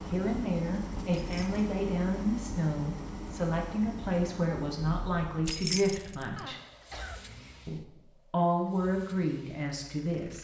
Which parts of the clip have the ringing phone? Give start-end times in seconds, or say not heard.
not heard.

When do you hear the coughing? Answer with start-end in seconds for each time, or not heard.
6.3-7.2.